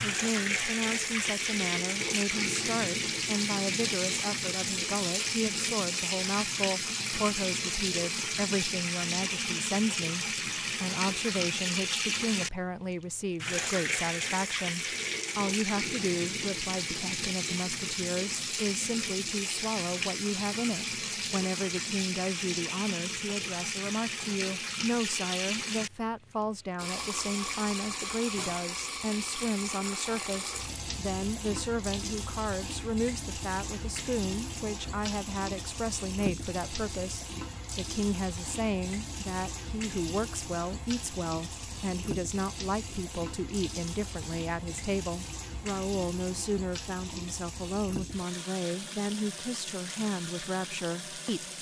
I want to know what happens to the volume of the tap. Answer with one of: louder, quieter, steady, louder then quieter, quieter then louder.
quieter.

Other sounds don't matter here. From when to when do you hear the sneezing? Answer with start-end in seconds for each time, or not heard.
not heard.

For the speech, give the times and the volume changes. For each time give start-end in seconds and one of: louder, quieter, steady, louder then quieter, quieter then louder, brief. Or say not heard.
0.0-51.5 steady.